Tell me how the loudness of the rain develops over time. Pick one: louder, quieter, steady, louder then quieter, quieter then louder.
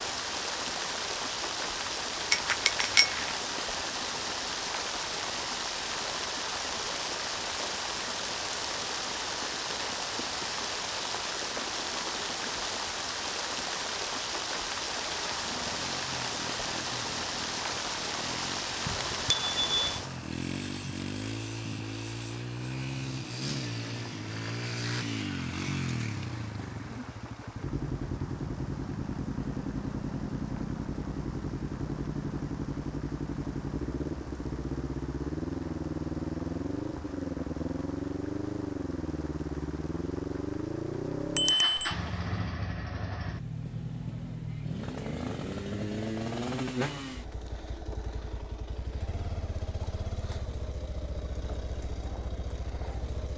quieter.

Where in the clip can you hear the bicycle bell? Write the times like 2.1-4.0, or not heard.
2.3-3.3, 18.9-20.0, 41.4-42.0.